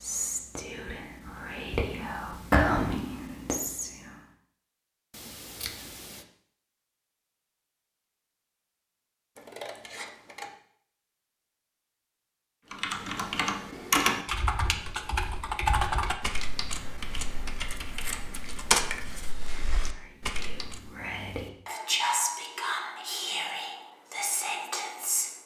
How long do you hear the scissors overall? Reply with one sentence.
You can hear the scissors for 4 seconds altogether.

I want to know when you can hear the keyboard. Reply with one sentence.
You can hear the keyboard from 12.7 to 20.9 s.